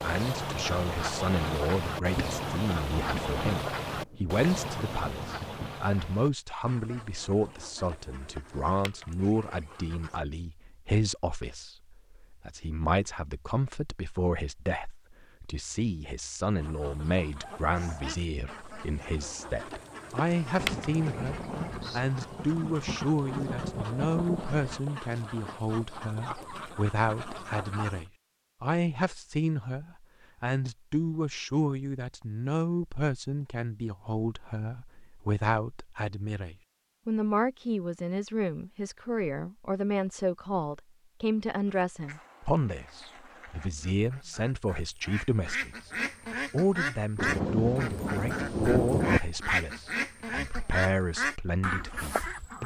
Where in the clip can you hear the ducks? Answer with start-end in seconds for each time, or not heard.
0.0-10.2, 16.6-28.1, 41.6-52.6.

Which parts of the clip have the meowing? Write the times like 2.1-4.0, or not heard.
not heard.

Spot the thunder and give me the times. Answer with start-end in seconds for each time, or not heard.
1.9-5.8, 20.6-24.8, 47.1-49.2.